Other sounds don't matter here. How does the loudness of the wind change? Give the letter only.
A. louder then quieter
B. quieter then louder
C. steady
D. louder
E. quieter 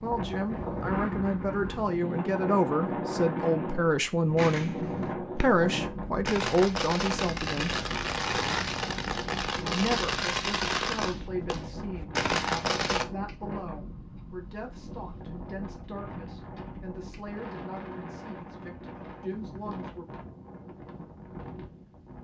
E.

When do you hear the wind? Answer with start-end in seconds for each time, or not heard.
0.0-22.1.